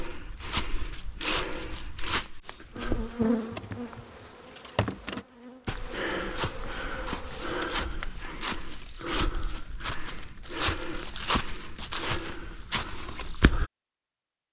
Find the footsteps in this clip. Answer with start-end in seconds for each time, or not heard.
0.0-3.4, 5.7-13.7.